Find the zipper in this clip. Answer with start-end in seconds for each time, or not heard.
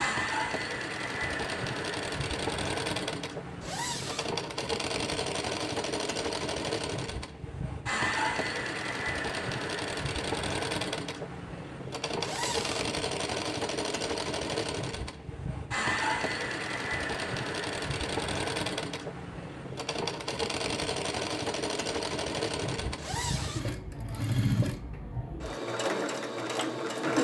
3.6-4.3, 12.2-12.9, 22.9-23.7.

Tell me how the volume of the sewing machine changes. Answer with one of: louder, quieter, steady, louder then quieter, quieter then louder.
steady.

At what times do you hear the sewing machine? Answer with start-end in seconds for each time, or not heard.
0.0-27.1.